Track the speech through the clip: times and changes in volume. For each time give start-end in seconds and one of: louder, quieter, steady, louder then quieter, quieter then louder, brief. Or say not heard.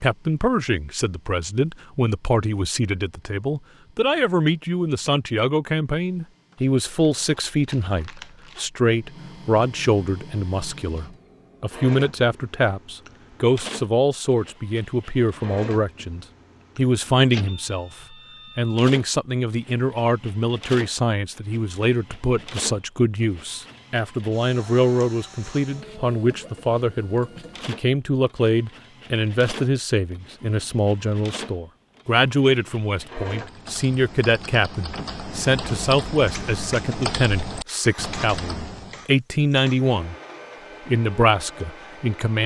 0.0-17.9 steady
18.6-40.1 steady
40.9-42.4 brief.